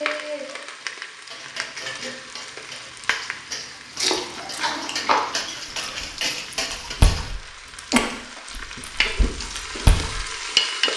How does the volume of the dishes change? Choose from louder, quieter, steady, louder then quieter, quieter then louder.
louder.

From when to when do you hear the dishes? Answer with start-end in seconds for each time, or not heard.
0.0-7.3.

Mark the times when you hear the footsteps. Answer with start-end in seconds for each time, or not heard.
not heard.